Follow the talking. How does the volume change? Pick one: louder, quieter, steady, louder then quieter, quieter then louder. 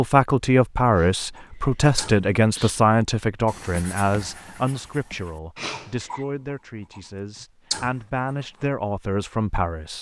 quieter then louder.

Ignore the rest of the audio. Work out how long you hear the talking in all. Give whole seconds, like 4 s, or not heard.
10 s.